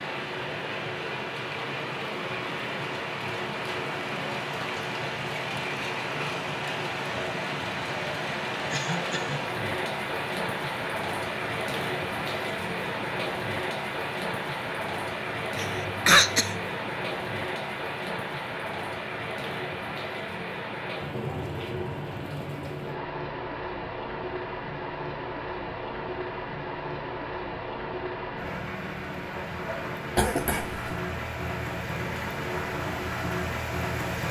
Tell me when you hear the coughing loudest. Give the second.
16 s.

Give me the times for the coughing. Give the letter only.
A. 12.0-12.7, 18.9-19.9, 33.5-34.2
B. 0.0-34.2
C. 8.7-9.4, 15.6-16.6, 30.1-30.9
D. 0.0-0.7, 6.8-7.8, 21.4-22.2
C.